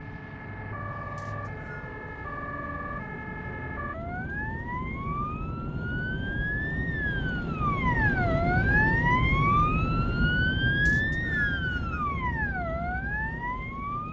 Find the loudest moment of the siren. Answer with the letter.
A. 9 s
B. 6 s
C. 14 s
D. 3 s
A.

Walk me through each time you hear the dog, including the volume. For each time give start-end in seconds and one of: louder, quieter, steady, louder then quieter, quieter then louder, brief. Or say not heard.
not heard.